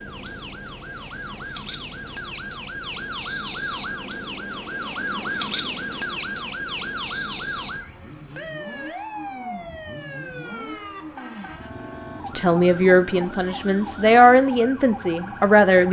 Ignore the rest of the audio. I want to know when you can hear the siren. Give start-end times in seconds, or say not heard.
0.0-15.8.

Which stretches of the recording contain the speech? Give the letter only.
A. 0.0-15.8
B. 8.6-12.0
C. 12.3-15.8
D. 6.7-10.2
C.